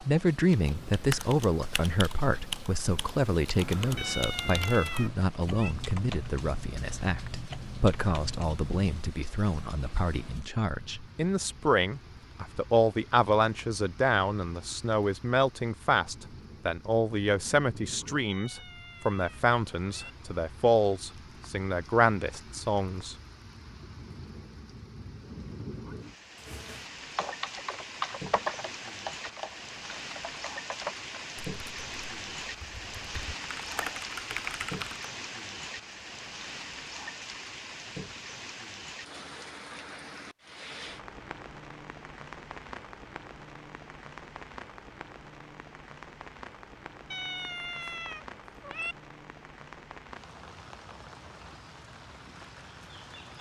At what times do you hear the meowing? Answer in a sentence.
The meowing can be heard from 4.0 to 5.8 s, from 18.2 to 20.1 s and from 47.1 to 49.0 s.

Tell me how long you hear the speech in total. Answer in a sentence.
The speech can be heard for 23 seconds in total.